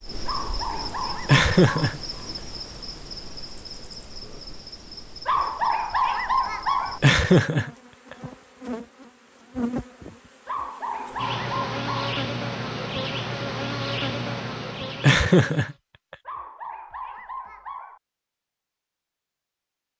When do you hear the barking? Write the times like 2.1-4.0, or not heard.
0.2-1.9, 5.2-7.0, 10.4-12.2, 16.2-18.0.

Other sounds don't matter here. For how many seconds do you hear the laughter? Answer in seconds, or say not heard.
3 s.